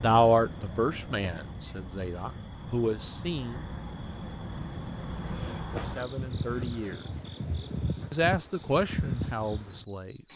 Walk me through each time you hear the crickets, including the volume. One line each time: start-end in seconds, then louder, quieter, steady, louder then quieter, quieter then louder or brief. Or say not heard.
0.0-10.3 louder.